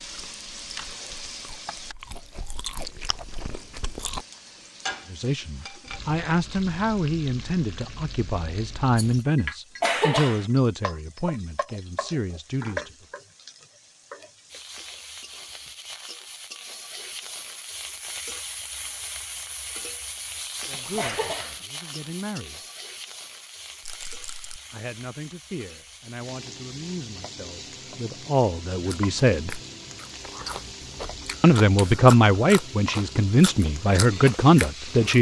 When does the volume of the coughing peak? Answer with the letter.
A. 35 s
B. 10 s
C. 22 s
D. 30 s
B.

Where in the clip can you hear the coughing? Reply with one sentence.
You can hear the coughing from 9.8 to 10.5 s and from 20.9 to 21.6 s.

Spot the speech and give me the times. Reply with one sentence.
The speech can be heard from 5.0 to 13.1 s, from 20.6 to 22.6 s, from 24.7 to 29.6 s and from 31.4 to 35.1 s.